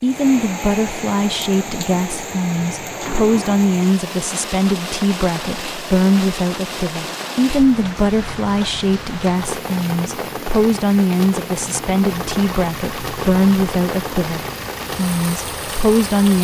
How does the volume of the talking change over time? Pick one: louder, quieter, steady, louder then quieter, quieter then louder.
steady.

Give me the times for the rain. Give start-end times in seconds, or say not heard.
0.0-16.3.